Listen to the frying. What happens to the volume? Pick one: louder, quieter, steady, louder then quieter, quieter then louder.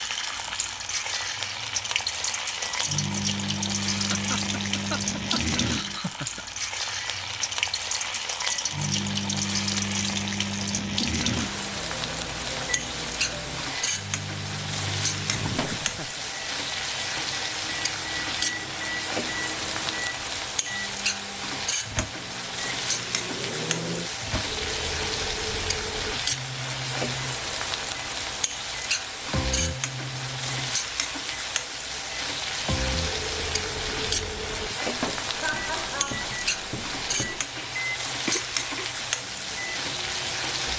steady.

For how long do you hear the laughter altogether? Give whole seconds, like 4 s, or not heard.
5 s.